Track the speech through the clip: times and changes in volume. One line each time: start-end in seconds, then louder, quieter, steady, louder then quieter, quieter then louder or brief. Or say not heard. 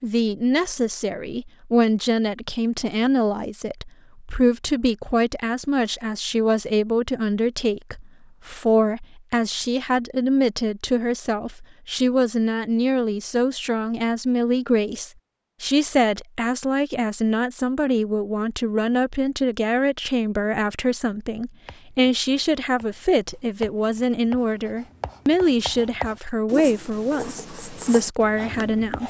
0.0-29.0 steady.